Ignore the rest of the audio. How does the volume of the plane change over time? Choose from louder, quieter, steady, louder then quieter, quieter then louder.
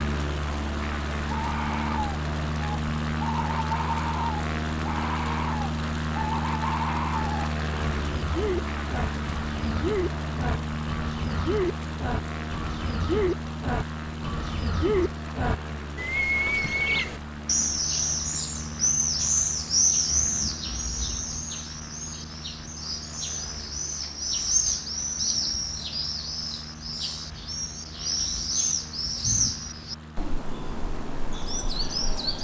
quieter.